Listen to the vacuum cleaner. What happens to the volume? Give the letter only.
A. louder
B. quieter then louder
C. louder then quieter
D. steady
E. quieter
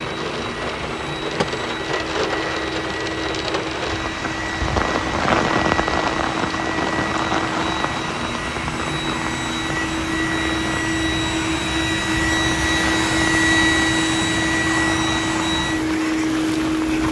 A.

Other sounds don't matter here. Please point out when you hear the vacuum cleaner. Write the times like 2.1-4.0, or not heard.
0.0-17.0.